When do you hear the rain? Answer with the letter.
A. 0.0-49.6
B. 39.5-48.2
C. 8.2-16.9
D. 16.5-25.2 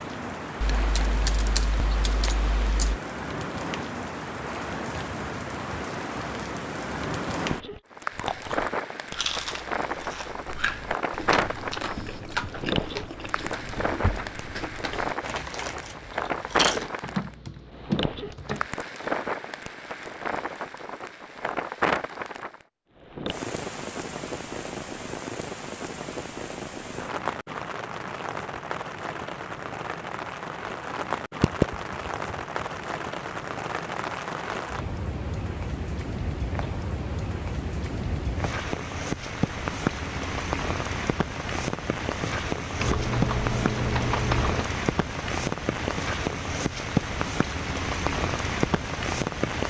A.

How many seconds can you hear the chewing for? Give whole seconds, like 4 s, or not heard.
9 s.